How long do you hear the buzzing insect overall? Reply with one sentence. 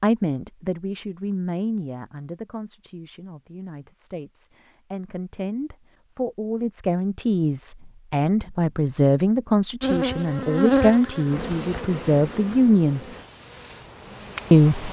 The buzzing insect can be heard for 5 seconds in total.